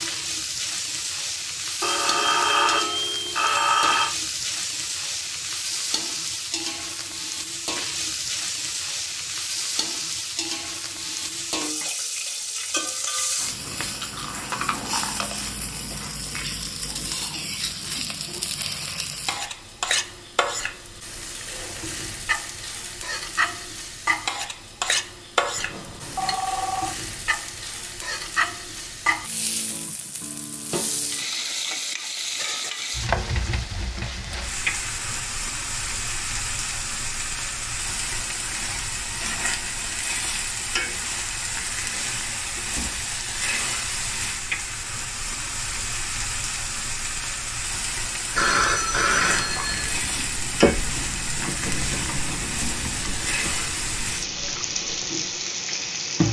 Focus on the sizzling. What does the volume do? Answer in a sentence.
The loudness of the sizzling stays about the same.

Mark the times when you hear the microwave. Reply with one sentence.
You can't hear the microwave here.